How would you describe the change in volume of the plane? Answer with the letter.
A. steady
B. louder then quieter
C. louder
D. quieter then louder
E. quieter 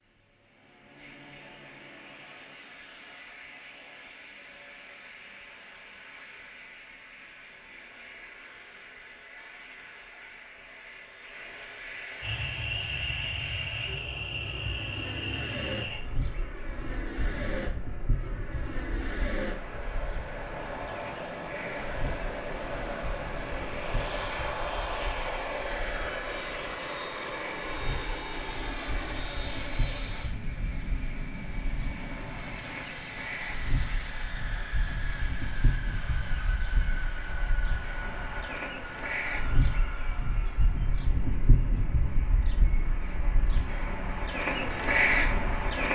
B.